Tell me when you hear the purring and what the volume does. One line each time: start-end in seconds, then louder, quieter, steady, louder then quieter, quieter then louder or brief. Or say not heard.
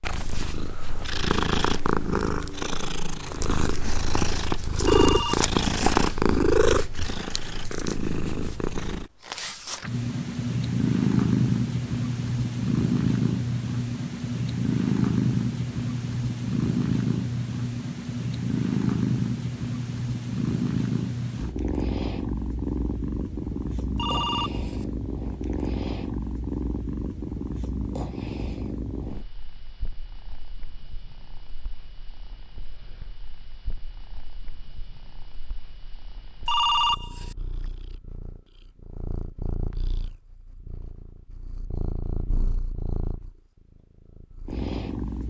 0.0-45.2 quieter.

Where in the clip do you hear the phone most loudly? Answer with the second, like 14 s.
37 s.